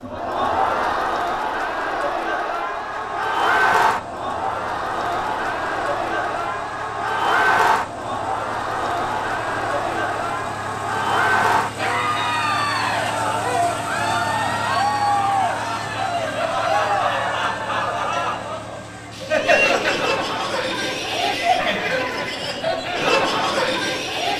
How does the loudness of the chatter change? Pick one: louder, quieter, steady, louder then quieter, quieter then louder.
steady.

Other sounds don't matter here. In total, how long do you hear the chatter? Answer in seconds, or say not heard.
24 s.